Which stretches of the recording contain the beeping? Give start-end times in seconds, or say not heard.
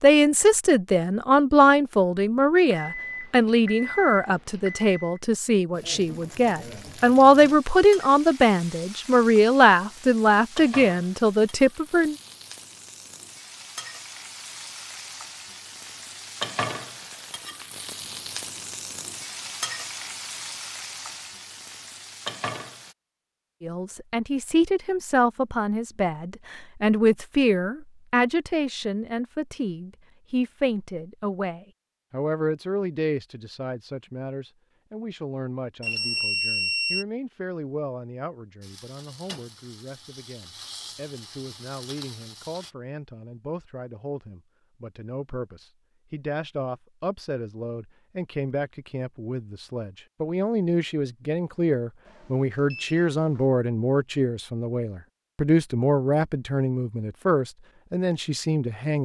2.7-5.2, 35.8-37.0, 52.0-53.5.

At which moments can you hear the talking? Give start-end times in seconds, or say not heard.
0.0-12.2, 23.6-59.0.